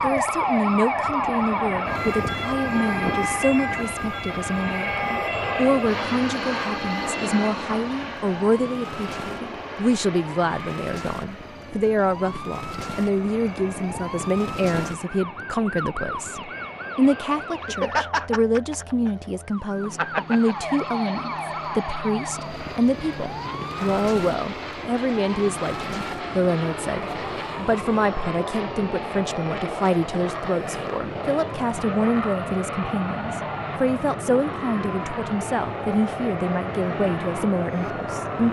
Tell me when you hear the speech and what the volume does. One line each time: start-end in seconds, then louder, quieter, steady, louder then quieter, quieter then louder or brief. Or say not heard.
0.0-38.4 steady.